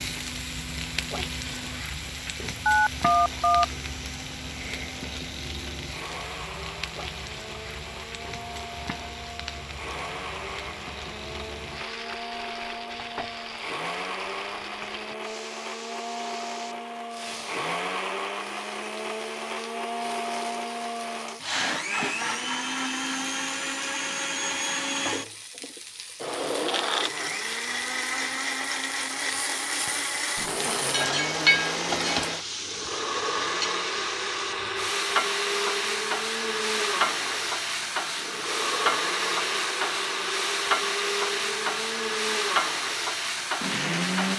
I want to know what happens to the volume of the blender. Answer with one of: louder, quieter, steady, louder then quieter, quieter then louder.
louder.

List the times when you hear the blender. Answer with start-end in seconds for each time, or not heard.
0.0-44.3.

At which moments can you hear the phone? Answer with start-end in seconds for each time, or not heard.
2.6-3.6.